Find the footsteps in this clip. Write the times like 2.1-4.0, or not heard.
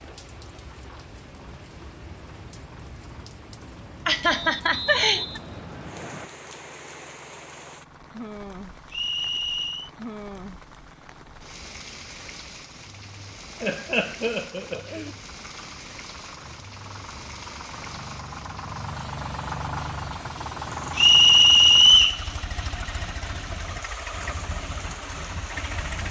not heard.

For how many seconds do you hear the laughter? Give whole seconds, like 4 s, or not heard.
3 s.